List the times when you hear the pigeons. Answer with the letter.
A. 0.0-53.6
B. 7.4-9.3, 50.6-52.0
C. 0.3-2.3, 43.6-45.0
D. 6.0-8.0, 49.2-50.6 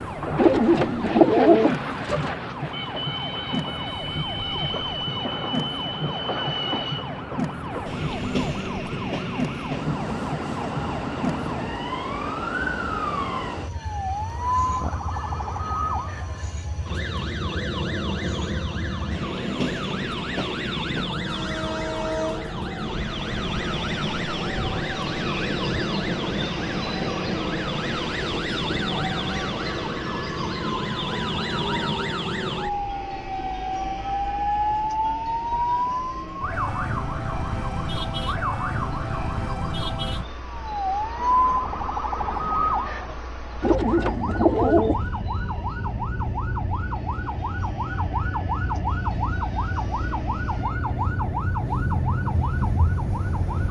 C.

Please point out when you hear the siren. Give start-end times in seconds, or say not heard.
0.0-53.6.